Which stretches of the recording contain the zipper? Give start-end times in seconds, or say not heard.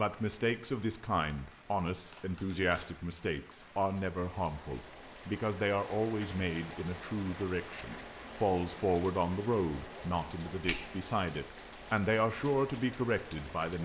not heard.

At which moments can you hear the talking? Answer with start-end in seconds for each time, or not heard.
0.0-13.7.